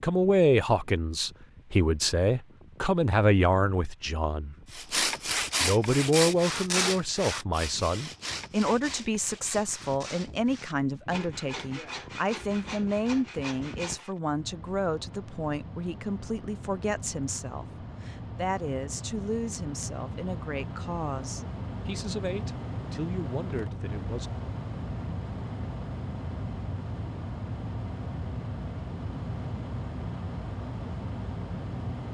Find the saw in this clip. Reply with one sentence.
The saw can be heard from 4.7 to 14.1 s.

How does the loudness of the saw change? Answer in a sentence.
The loudness of the saw goes down.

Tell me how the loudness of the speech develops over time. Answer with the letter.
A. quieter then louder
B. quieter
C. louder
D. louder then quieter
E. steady
B.